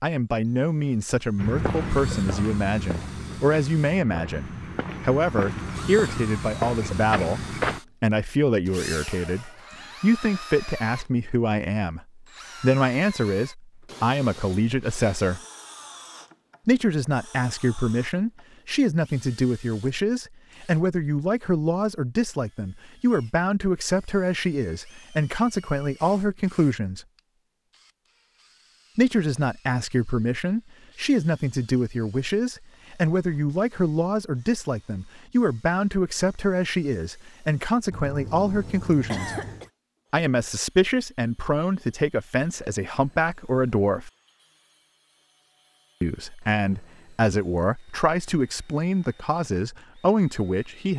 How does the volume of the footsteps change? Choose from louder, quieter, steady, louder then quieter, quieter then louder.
quieter then louder.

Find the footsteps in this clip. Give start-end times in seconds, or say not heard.
1.4-7.8.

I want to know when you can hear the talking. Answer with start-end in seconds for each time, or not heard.
0.0-15.4, 16.6-27.1, 28.9-39.4, 40.1-44.1, 46.0-50.9.